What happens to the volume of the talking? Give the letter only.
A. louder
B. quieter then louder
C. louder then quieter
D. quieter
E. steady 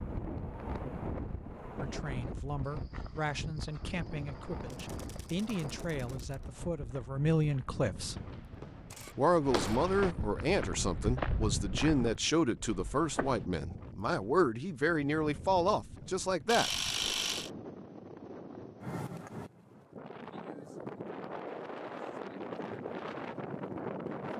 A.